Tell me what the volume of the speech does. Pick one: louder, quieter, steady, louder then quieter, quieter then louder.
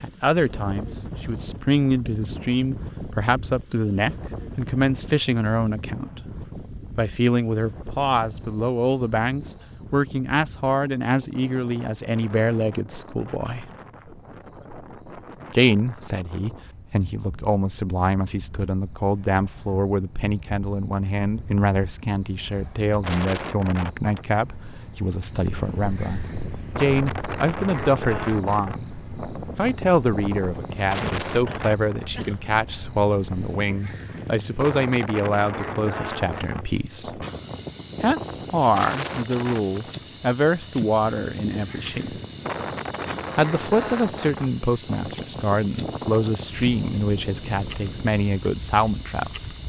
steady.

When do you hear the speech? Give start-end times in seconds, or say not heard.
0.0-13.7, 15.5-28.9, 29.6-37.2, 38.0-42.1, 43.4-49.5.